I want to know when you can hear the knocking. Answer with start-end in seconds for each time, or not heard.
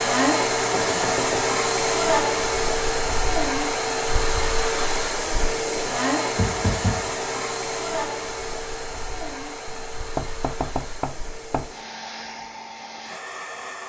0.7-1.5, 6.3-7.2, 9.7-11.7.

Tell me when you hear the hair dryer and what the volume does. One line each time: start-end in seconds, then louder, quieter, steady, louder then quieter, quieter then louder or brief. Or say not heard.
0.0-13.8 quieter.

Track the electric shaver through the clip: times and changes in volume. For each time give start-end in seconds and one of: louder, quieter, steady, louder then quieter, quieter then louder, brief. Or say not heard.
not heard.